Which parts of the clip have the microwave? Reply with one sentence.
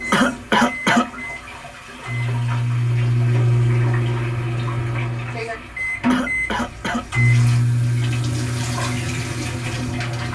The microwave can be heard from 0.0 to 10.3 s.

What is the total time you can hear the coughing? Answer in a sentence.
You can hear the coughing for 2 seconds altogether.